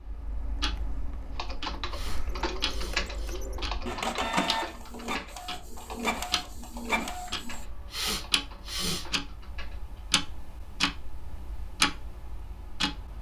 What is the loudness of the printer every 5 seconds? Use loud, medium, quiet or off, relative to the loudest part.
loud, loud, off.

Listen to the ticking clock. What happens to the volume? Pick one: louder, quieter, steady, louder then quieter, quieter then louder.
louder.